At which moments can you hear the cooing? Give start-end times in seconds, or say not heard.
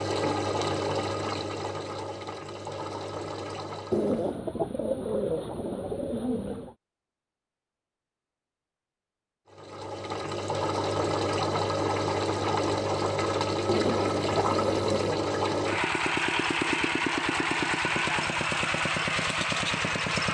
3.9-6.8, 13.7-15.2.